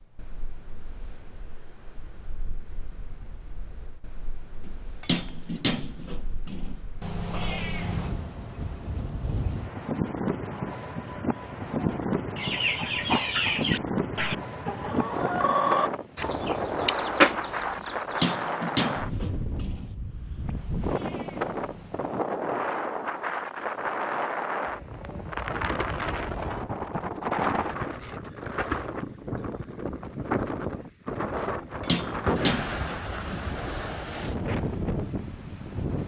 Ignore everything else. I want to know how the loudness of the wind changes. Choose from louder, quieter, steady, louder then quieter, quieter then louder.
louder.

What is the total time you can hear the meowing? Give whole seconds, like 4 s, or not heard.
3 s.